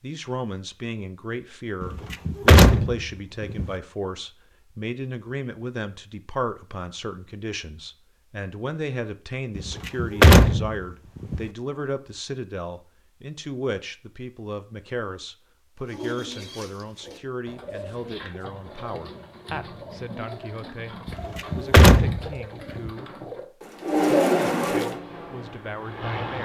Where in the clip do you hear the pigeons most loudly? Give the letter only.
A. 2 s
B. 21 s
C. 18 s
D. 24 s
D.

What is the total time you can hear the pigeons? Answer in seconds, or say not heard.
9 s.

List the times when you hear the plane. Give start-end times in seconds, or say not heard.
24.9-26.4.